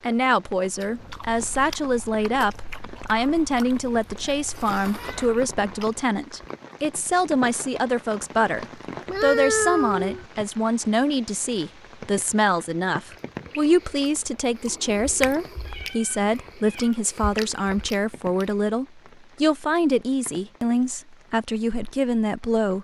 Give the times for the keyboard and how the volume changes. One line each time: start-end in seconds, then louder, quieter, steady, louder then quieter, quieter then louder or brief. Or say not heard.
not heard.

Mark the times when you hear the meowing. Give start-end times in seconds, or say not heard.
4.9-5.3, 9.1-10.2, 15.6-17.0.